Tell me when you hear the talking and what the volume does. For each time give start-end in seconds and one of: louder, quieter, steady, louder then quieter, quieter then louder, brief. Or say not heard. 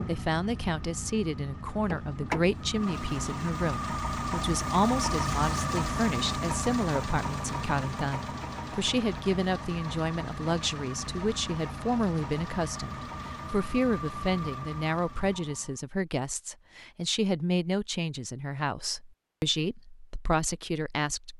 0.0-21.3 steady.